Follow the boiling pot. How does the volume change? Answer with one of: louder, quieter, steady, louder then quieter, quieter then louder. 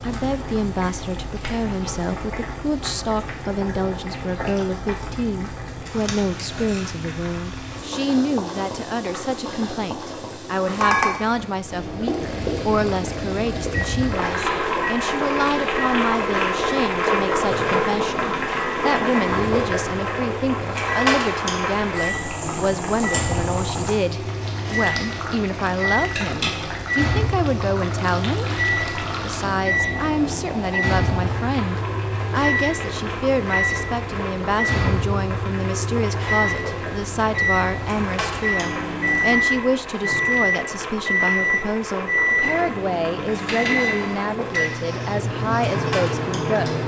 louder then quieter.